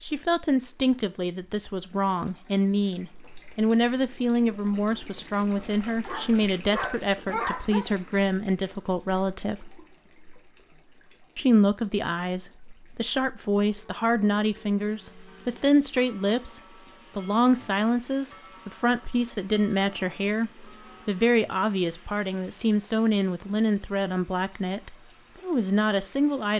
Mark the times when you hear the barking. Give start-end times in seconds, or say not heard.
5.5-7.8.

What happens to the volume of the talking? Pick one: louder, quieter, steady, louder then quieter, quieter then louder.
steady.